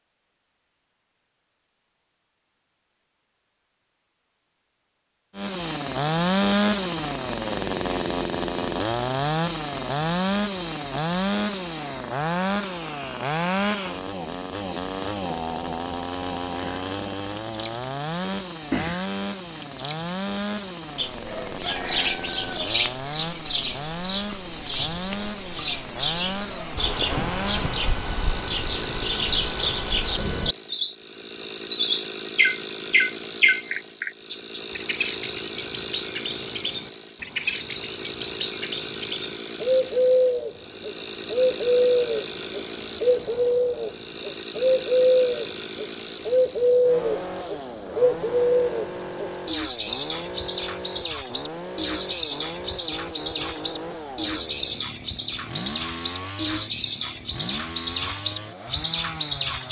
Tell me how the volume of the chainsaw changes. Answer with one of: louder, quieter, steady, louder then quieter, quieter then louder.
quieter.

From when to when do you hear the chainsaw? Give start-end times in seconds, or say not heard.
5.3-59.6.